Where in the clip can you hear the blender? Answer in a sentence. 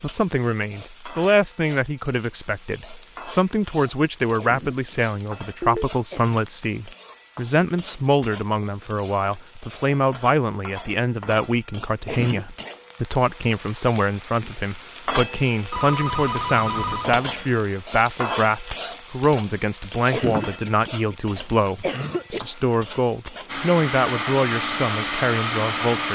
The blender can be heard from 23.4 to 26.1 s.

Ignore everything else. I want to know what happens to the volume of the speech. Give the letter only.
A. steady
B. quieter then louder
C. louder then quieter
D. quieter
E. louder
A.